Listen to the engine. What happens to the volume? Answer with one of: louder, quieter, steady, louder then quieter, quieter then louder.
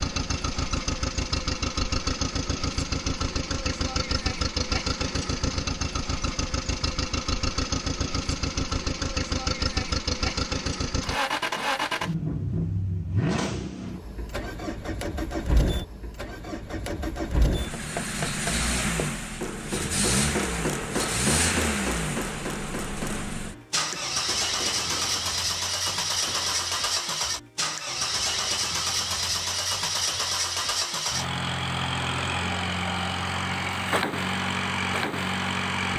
steady.